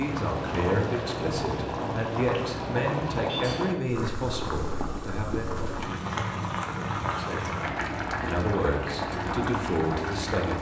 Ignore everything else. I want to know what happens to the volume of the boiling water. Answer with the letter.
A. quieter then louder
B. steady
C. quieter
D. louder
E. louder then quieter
B.